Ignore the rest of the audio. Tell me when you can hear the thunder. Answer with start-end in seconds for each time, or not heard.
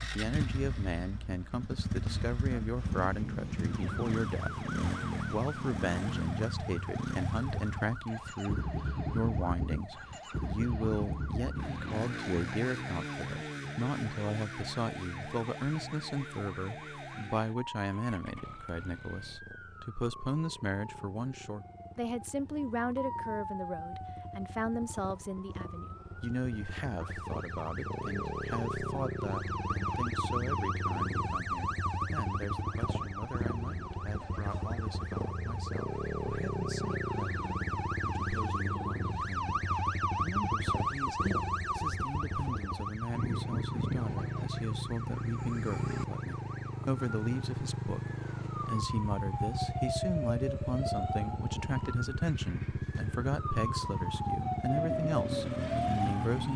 2.8-5.8.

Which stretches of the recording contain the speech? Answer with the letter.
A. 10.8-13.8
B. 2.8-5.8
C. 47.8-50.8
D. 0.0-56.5
D.